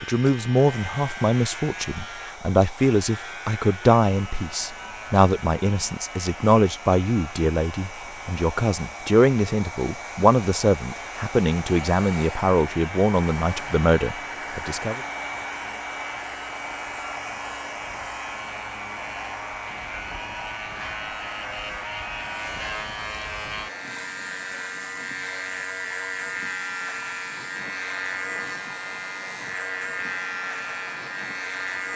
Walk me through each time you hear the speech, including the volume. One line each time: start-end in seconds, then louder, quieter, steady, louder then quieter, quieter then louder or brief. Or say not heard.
0.0-15.0 steady.